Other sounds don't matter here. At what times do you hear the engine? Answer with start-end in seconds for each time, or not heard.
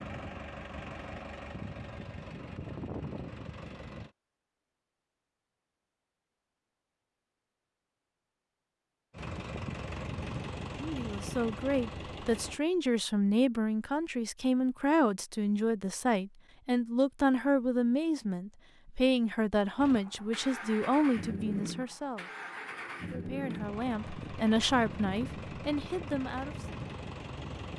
0.0-4.1, 9.1-12.6, 19.8-27.7.